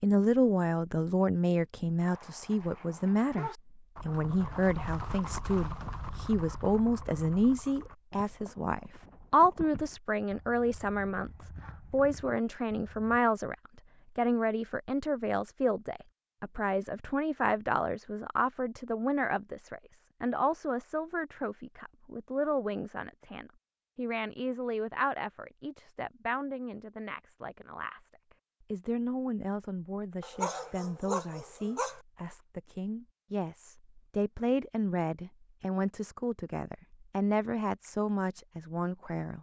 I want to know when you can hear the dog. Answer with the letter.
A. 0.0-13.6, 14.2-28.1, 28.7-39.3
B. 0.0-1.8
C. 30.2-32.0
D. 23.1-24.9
C.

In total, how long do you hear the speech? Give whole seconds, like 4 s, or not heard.
38 s.